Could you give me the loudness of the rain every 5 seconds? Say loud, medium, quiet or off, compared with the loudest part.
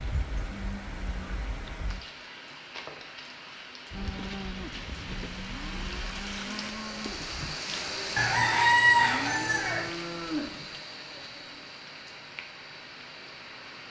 medium, loud, medium.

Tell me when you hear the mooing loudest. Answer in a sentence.
The loudest moment of the mooing is at 10 seconds.